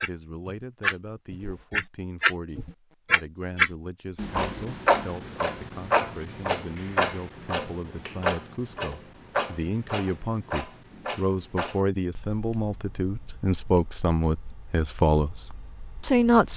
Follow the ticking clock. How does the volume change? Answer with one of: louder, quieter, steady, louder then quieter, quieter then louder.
quieter.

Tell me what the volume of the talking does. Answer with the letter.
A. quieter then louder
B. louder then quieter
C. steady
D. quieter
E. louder
E.